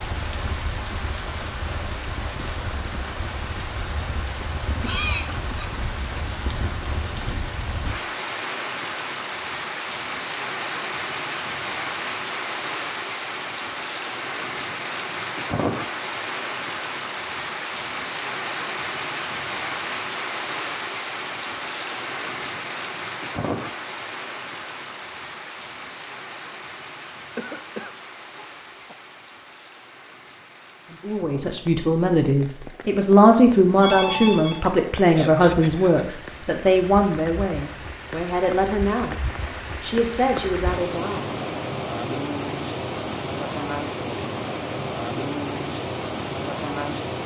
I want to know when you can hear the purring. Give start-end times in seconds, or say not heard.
not heard.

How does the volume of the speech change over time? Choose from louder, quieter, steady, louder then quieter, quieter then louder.
quieter.